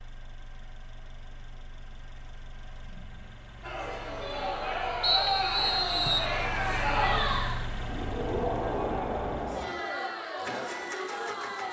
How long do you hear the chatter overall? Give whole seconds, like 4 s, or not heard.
8 s.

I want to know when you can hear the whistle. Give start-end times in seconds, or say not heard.
5.0-6.3.